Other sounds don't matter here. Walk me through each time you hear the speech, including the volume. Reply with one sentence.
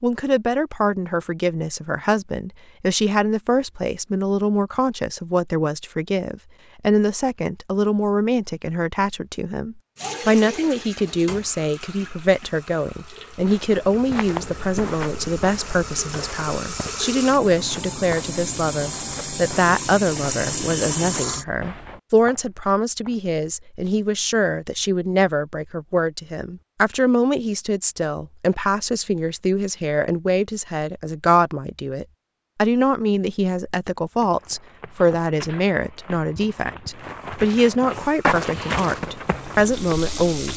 You can hear the speech from 0.0 to 40.5 s, at a steady volume.